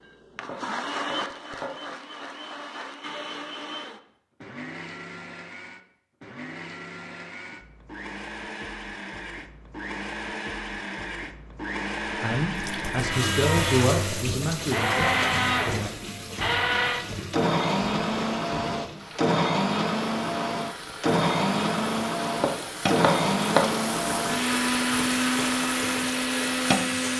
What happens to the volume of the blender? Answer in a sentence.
The volume of the blender goes up.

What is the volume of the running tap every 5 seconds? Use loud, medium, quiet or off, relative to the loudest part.
off, off, loud, medium, loud, loud.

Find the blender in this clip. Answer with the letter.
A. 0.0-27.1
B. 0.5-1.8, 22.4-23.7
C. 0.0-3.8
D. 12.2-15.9
A.